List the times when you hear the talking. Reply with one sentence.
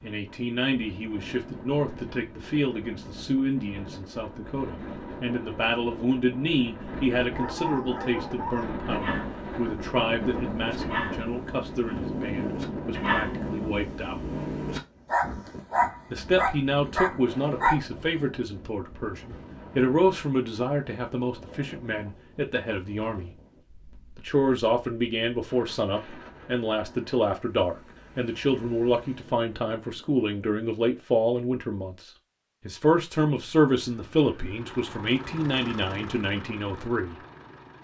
You can hear the talking from 0.0 to 14.2 s, from 16.1 to 23.4 s and from 24.1 to 37.2 s.